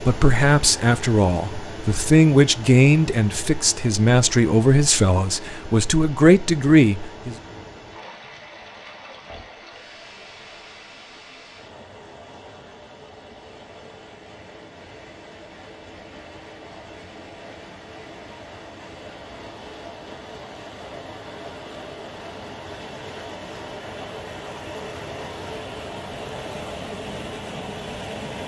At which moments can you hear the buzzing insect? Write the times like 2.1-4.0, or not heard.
not heard.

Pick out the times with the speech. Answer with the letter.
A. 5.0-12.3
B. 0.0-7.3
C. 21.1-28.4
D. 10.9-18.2
B.